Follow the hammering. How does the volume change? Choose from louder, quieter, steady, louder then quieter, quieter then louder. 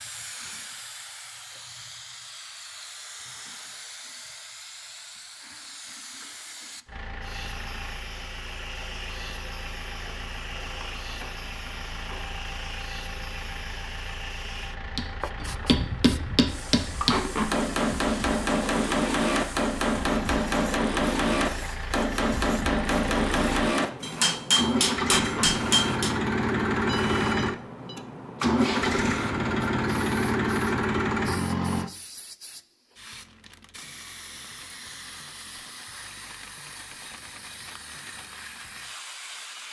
steady.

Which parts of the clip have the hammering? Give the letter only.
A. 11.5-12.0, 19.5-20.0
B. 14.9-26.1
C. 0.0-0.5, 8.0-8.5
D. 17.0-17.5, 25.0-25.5
B.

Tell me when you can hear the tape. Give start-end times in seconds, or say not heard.
17.0-17.5, 25.0-25.5.